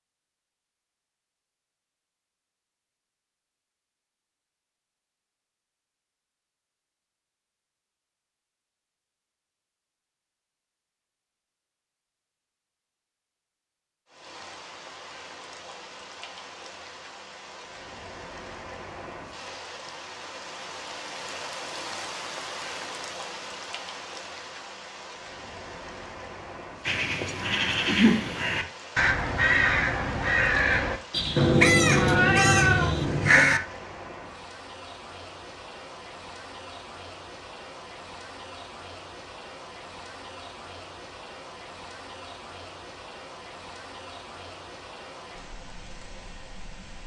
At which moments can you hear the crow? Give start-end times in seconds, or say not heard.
26.9-33.6.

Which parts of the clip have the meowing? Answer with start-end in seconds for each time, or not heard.
31.4-33.4.